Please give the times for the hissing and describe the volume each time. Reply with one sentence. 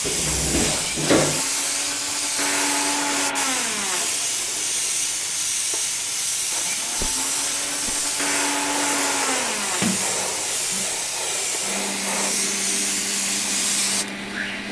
You can hear the hissing from 0.0 to 14.6 s, at a steady volume.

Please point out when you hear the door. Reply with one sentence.
You can hear the door from 0.0 to 1.4 s, from 7.0 to 8.1 s and from 9.8 to 10.8 s.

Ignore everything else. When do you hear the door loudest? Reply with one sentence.
The loudest moment of the door is at 1 second.